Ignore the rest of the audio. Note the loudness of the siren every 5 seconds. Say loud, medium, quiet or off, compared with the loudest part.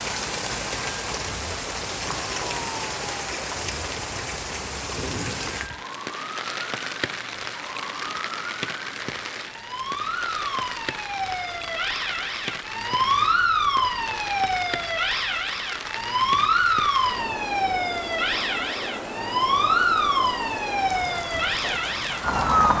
quiet, quiet, loud, loud, loud.